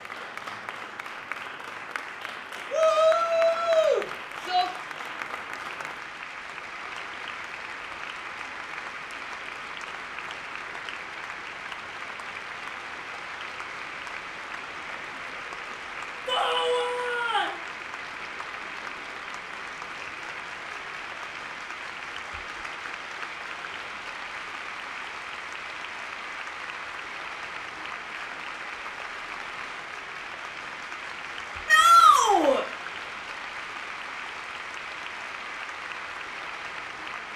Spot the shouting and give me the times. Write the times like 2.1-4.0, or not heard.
2.7-4.7, 16.2-17.6, 31.6-32.6.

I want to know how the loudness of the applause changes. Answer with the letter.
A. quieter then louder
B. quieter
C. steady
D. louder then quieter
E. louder
C.